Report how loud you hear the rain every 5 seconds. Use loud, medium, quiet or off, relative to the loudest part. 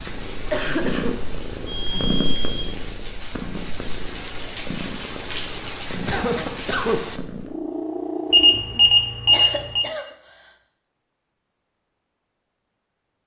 medium, loud, off.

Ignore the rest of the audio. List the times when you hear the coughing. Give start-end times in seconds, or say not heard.
0.5-2.1, 6.0-7.2, 9.3-10.1.